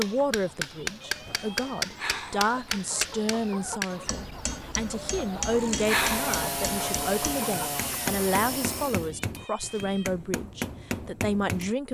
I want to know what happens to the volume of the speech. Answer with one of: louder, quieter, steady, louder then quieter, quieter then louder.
steady.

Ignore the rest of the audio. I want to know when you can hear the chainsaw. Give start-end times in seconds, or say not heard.
5.5-9.1.